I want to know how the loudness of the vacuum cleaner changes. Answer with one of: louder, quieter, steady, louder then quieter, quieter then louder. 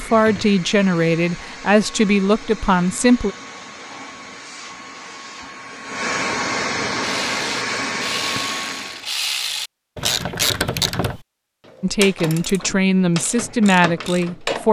louder.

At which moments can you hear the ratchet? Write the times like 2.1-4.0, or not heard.
7.0-14.6.